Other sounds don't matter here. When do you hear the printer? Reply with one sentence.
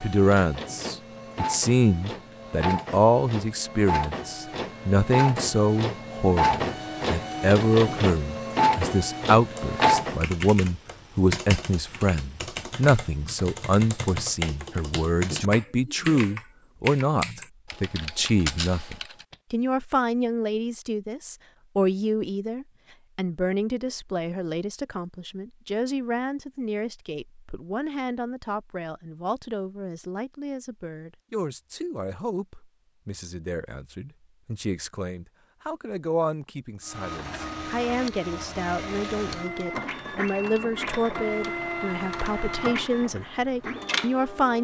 The printer can be heard from 0.0 to 10.2 s and from 36.9 to 44.5 s.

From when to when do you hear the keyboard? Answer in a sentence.
You can hear the keyboard from 9.5 to 19.4 s.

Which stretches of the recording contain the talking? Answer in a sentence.
You can hear the talking from 0.0 to 44.5 s.